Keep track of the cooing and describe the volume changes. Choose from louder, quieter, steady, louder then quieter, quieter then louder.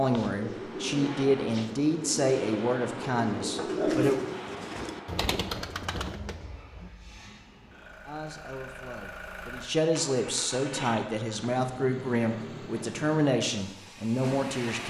louder then quieter.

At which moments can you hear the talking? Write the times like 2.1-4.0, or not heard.
0.0-4.2, 8.1-14.8.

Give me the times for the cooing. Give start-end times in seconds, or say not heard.
0.0-6.9.